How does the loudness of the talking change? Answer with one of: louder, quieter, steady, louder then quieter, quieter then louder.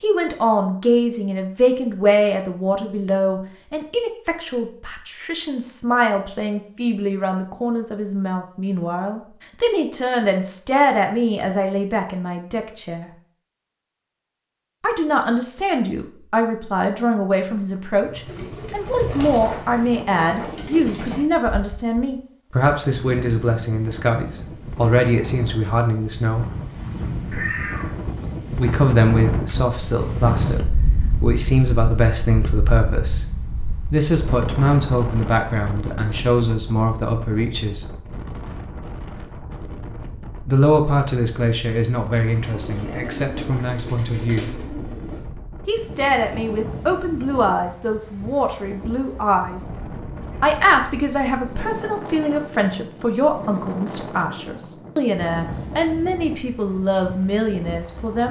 steady.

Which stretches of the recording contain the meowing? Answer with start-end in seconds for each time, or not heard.
27.3-28.0.